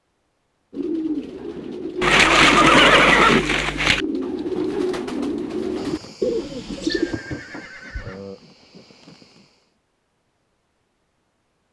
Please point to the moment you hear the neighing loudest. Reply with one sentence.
The loudest moment of the neighing is at 3 seconds.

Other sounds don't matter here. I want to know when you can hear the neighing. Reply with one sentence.
You can hear the neighing from 2.0 to 4.0 s and from 6.8 to 8.4 s.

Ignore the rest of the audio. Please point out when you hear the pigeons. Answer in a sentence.
The pigeons can be heard from 0.7 to 7.2 s.